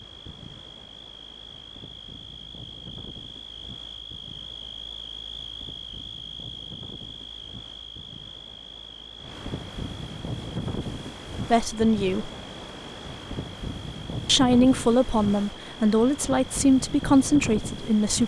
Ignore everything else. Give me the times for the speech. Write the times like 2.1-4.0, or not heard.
11.5-12.3, 14.2-18.2.